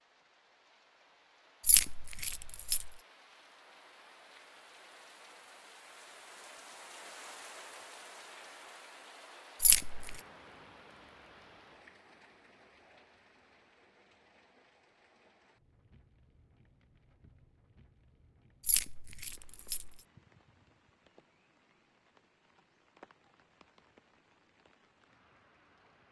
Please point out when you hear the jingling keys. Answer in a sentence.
The jingling keys can be heard from 1.6 to 2.9 s, from 9.6 to 10.2 s and from 18.6 to 20.0 s.